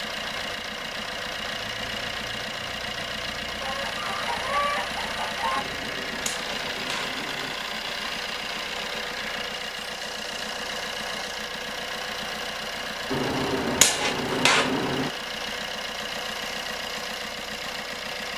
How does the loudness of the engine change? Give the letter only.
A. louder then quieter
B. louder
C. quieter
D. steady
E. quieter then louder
D.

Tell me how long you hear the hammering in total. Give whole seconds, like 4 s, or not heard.
4 s.